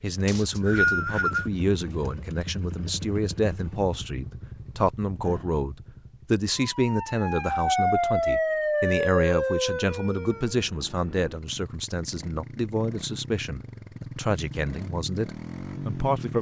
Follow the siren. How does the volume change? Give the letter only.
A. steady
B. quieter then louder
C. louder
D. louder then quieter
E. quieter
D.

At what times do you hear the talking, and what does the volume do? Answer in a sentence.
The talking can be heard from 0.0 to 16.3 s, at a steady volume.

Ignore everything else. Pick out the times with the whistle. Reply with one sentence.
You can hear the whistle from 0.2 to 1.5 s.